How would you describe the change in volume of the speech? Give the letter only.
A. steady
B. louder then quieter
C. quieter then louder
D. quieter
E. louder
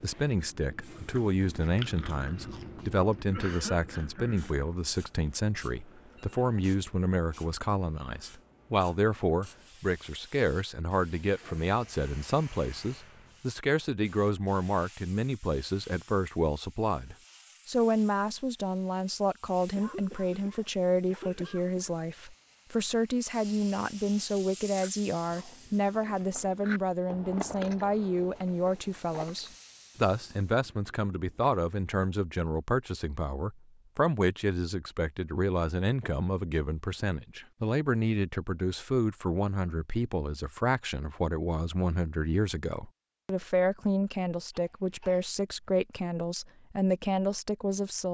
A.